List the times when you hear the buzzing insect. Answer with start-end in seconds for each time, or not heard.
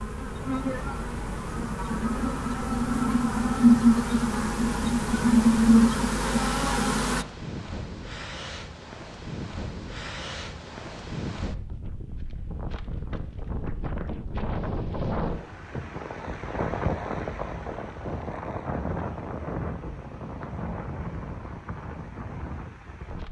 0.0-7.2.